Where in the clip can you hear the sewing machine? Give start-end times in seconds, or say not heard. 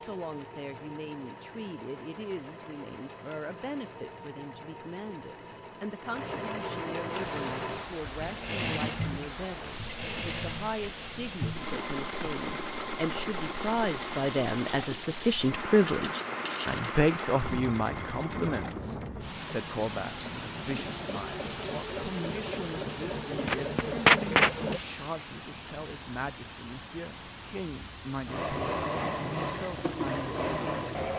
0.0-24.8, 28.2-31.1.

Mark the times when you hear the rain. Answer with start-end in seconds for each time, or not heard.
7.1-31.1.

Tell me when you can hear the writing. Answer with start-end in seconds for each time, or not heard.
not heard.